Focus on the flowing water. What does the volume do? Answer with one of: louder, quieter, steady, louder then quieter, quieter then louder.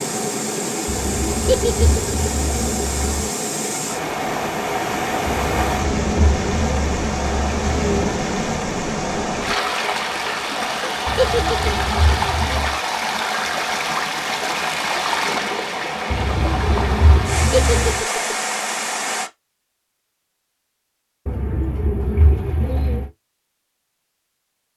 steady.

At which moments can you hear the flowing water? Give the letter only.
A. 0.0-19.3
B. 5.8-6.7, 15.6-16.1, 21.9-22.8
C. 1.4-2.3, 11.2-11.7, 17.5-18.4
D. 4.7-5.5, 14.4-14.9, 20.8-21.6
A.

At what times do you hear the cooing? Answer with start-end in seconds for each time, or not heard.
0.8-3.3, 5.3-8.2, 11.1-12.8, 16.1-18.0, 21.2-23.1.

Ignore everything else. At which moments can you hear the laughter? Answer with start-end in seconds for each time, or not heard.
1.4-2.3, 11.2-11.7, 17.5-18.4.